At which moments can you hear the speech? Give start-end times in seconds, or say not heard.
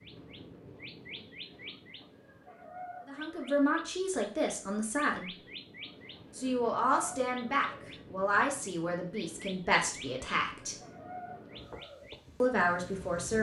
3.0-5.3, 6.3-10.8, 12.4-13.3.